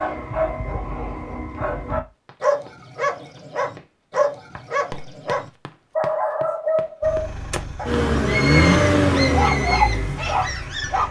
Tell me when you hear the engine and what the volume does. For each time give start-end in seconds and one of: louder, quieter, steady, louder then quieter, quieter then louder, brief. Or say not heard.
7.0-11.0 louder then quieter.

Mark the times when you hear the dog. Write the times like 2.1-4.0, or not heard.
0.0-11.0.